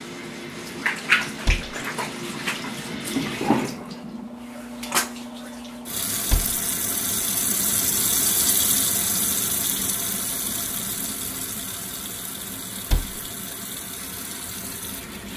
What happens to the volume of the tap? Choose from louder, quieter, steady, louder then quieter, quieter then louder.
quieter.